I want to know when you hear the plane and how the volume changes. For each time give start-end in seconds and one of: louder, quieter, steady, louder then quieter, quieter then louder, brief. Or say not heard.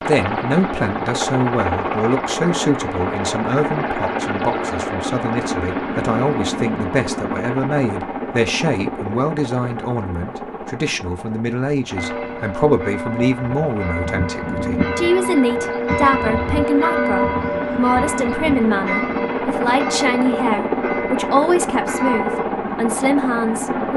0.0-23.9 quieter then louder.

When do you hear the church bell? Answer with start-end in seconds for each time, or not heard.
11.9-22.4.